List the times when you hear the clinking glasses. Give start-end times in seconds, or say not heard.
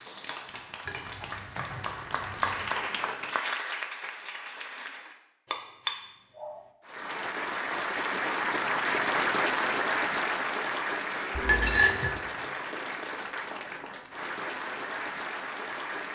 0.8-2.7, 5.5-6.6, 11.3-12.2.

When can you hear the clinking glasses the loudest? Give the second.
12 s.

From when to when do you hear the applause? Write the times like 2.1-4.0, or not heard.
0.0-5.2, 6.8-16.0.